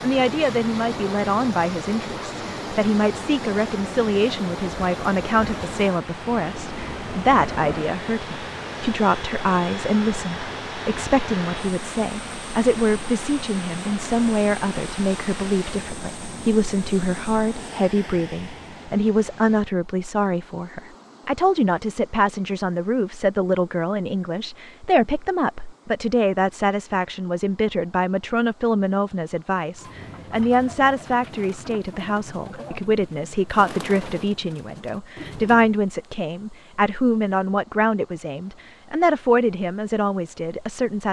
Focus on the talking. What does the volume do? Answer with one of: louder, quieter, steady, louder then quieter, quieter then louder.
steady.